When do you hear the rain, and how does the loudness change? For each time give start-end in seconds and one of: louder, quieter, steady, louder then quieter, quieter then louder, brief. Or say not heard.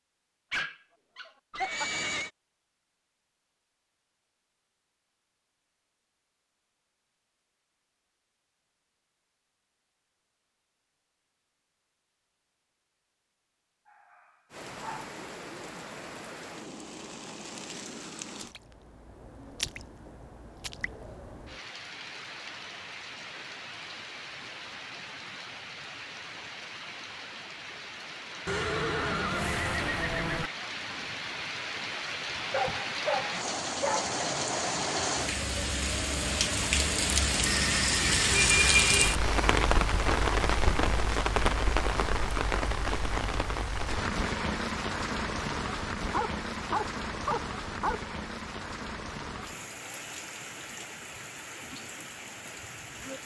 14.5-53.2 louder then quieter.